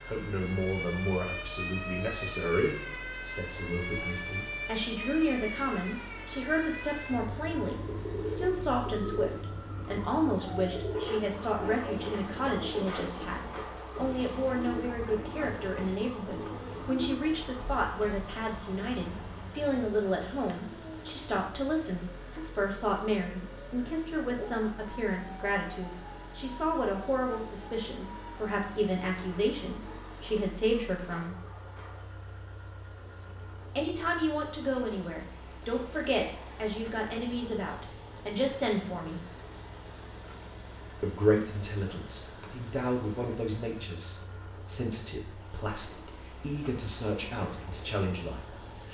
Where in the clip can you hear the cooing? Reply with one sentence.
You can hear the cooing from 7.8 to 17.1 s.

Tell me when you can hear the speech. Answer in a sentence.
You can hear the speech from 0.1 to 31.4 s, from 33.8 to 39.2 s and from 41.0 to 48.8 s.